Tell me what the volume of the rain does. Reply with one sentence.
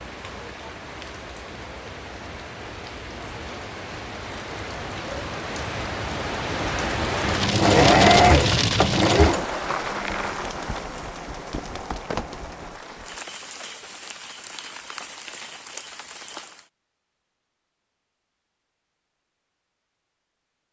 The loudness of the rain goes up, then down.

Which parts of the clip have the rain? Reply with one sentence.
The rain can be heard from 0.0 to 16.7 s.